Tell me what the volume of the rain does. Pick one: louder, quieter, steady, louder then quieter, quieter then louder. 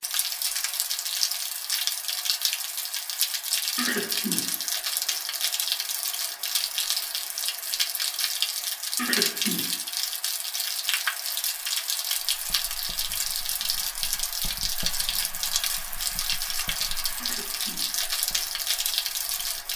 steady.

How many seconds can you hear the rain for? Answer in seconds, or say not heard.
20 s.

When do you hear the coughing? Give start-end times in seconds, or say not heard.
3.8-4.6, 8.9-9.8, 17.1-18.1.